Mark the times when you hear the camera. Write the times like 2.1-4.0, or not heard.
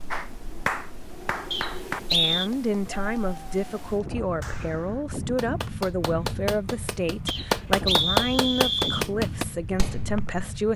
not heard.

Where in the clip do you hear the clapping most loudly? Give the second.
8 s.